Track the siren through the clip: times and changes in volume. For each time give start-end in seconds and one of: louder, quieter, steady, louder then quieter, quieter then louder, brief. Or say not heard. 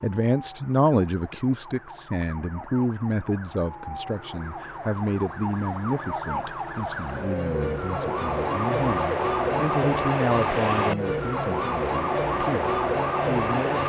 0.0-13.8 louder.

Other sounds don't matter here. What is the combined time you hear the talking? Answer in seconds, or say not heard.
14 s.